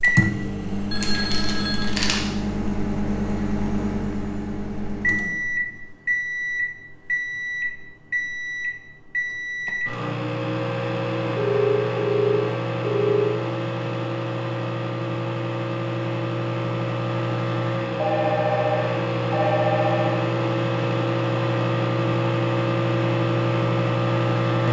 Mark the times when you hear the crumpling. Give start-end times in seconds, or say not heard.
1.0-2.2.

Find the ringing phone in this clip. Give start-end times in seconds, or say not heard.
0.9-1.9, 11.3-13.3, 17.9-20.2.